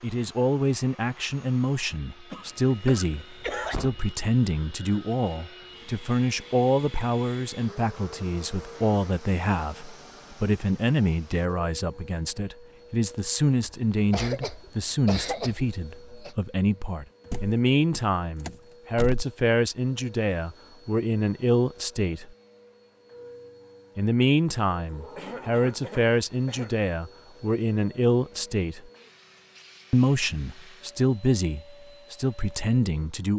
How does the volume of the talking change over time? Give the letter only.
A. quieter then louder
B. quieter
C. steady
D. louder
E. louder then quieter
C.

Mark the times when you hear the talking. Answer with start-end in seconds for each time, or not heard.
0.0-22.3, 23.9-28.9, 29.9-33.3.